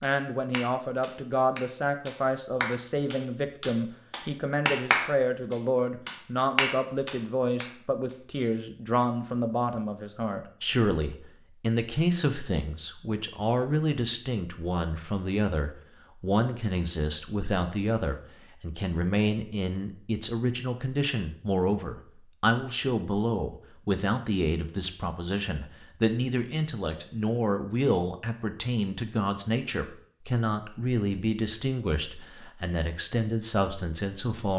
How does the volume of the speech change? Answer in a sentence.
The volume of the speech stays about the same.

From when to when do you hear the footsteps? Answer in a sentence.
The footsteps can't be heard in this clip.